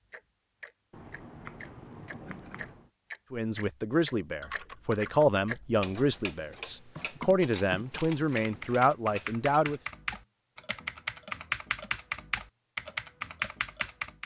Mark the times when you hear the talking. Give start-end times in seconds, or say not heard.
3.3-9.8.